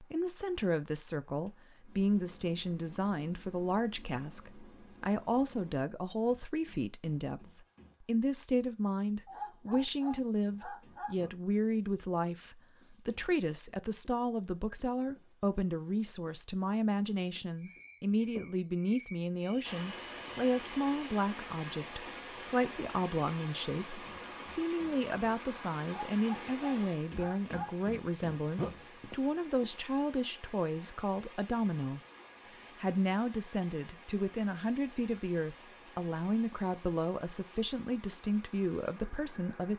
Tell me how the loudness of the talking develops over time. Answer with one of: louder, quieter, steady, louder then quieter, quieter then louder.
steady.